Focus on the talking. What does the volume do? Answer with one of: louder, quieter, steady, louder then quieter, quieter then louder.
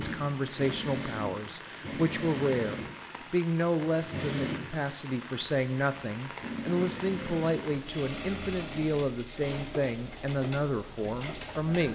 steady.